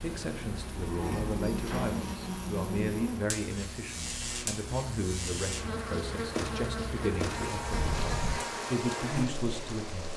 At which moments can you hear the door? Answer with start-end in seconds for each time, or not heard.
1.5-2.0, 7.7-8.4.